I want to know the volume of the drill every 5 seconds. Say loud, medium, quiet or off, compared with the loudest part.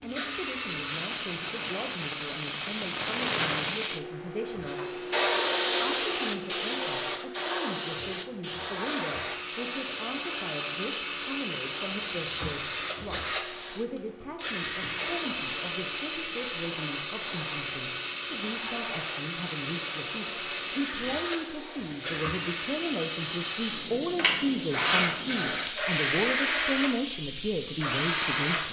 medium, medium, loud, loud, loud, loud.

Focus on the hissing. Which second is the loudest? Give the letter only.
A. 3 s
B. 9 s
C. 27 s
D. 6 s
D.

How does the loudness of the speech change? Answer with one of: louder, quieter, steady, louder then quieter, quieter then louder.
louder.